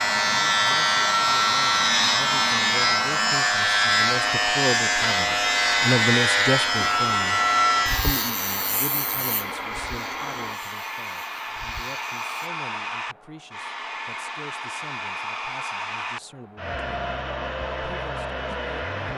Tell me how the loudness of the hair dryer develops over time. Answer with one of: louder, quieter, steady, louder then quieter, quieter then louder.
steady.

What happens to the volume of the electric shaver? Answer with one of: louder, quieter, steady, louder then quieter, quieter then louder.
quieter.